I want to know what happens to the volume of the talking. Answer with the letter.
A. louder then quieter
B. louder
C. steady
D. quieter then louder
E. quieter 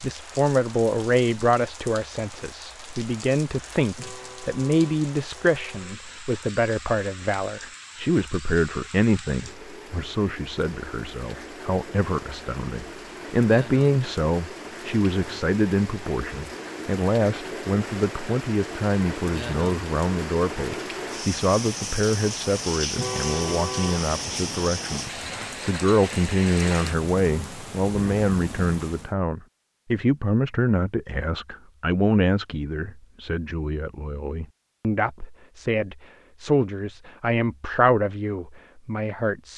C.